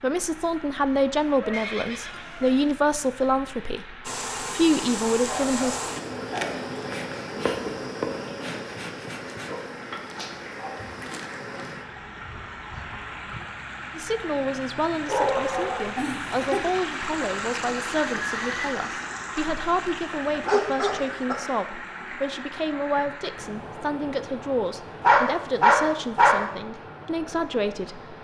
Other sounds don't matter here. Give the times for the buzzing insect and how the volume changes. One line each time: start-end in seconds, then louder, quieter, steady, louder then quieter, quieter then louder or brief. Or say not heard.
4.0-13.4 quieter.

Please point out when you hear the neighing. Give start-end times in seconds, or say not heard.
1.5-2.8, 18.2-18.8.